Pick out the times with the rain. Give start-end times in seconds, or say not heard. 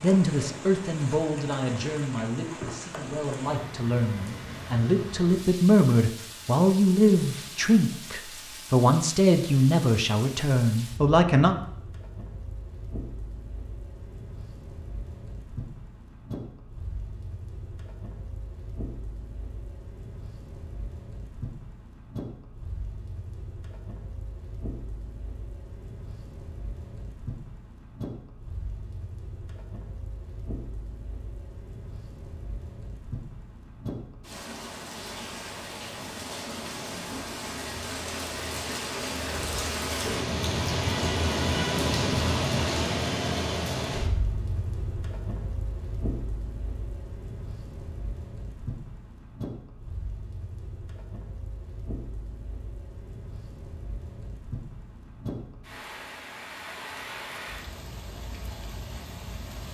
0.0-59.7.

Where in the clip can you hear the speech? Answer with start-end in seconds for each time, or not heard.
0.0-11.6.